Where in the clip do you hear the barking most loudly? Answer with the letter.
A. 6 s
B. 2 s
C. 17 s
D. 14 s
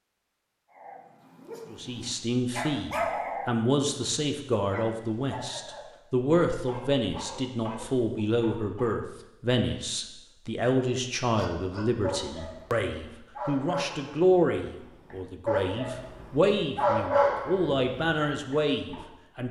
C.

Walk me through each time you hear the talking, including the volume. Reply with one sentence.
You can hear the talking from 1.7 to 19.4 s, at a steady volume.